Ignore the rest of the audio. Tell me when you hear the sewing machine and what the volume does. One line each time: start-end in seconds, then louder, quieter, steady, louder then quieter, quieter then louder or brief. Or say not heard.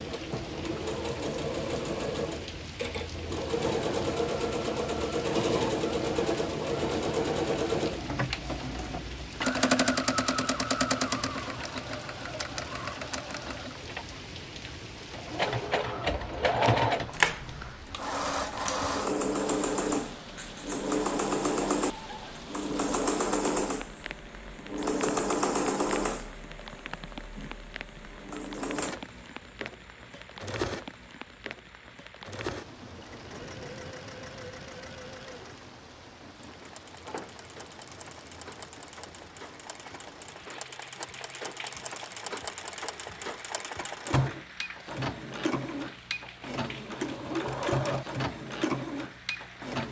0.0-49.8 quieter then louder.